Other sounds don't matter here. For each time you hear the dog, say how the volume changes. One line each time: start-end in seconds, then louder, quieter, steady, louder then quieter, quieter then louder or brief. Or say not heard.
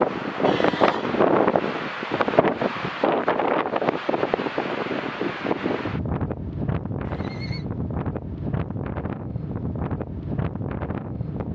not heard.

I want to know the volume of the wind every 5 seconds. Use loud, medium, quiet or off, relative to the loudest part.
loud, medium, medium.